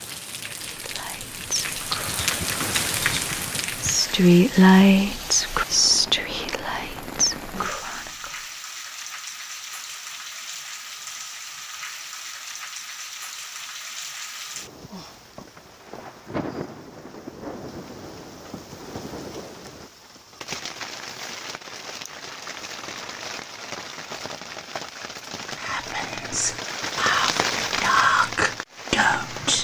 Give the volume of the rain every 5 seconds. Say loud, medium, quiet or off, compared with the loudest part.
loud, medium, medium, medium, medium, loud.